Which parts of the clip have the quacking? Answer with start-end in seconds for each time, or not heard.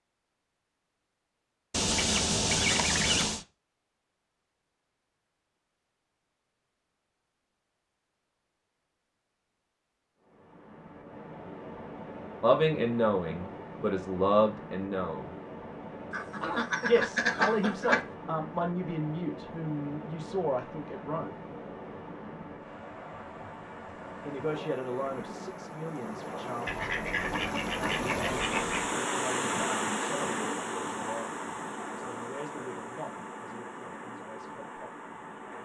1.7-3.5, 16.1-18.1, 26.6-28.9.